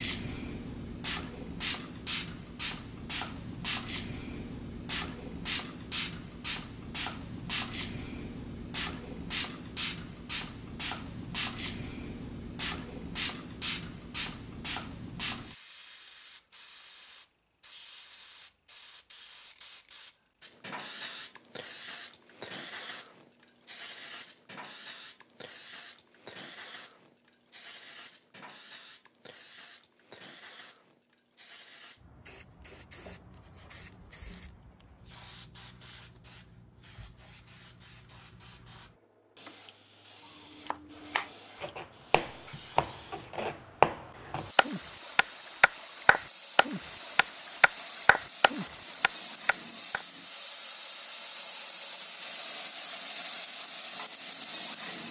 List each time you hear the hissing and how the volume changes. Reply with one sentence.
You can hear the hissing from 0.0 to 55.0 s, getting quieter then louder.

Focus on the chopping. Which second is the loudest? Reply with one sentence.
The volume of the chopping peaks at 44 seconds.